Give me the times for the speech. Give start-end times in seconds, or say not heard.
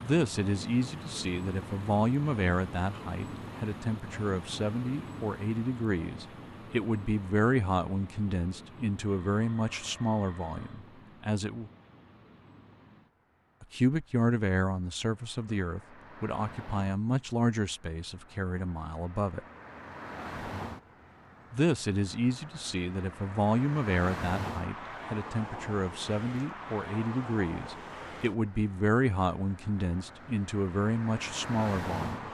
0.0-11.7, 13.6-19.4, 21.5-32.3.